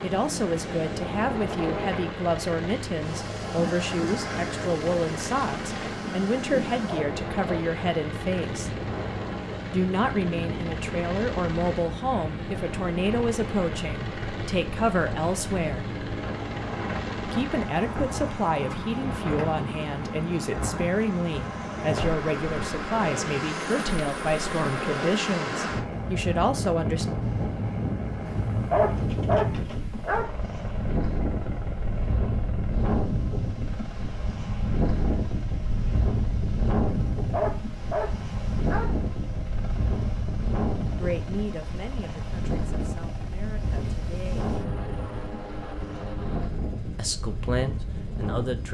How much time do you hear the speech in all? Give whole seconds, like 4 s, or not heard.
30 s.